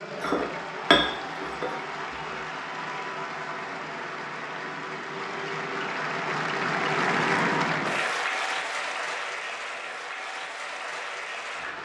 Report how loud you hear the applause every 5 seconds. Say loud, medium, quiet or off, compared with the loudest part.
medium, loud, medium.